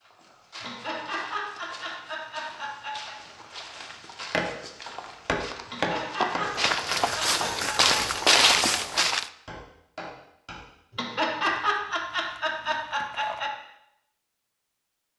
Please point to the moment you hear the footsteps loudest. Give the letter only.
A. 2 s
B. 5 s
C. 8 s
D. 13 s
C.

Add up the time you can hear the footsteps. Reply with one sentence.
The footsteps can be heard for 9 seconds in total.